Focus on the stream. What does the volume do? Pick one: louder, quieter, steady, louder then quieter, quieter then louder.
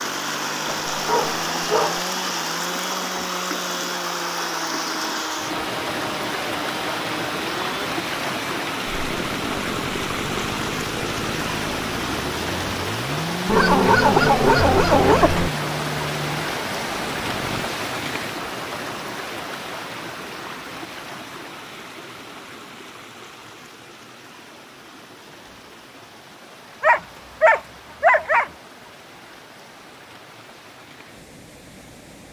quieter.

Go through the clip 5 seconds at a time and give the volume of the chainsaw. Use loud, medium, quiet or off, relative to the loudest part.
loud, loud, loud, loud, off, off, off.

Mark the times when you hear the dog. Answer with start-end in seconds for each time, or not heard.
0.7-2.0, 13.4-15.5, 26.8-28.5.